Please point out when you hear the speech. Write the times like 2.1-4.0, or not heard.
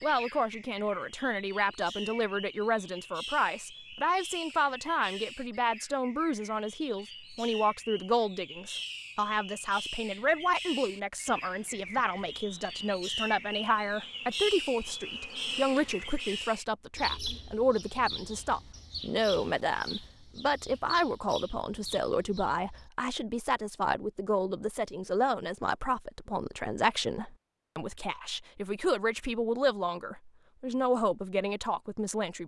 0.0-32.4.